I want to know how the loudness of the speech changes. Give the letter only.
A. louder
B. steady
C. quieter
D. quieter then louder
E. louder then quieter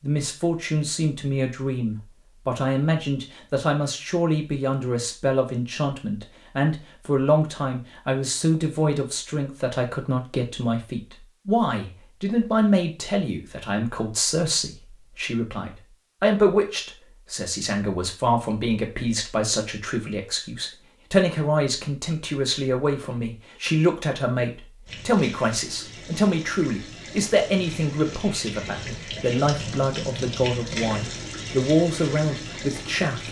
B.